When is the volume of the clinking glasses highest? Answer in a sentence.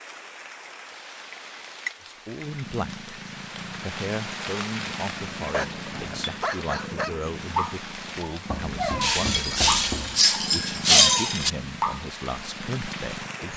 The loudest moment of the clinking glasses is at 11 seconds.